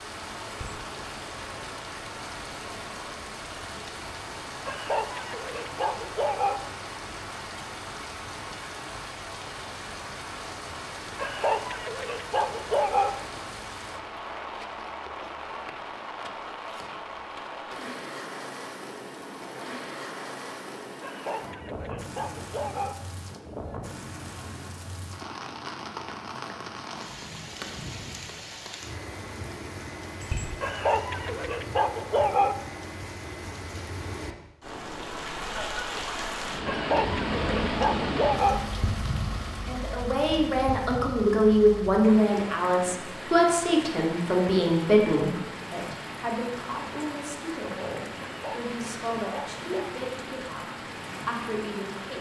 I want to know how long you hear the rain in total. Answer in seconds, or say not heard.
52 s.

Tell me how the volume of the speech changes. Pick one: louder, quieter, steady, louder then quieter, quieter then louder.
quieter.